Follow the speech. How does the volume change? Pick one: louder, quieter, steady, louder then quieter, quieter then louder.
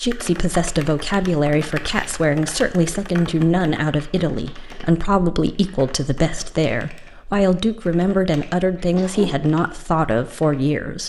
steady.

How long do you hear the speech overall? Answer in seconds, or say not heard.
11 s.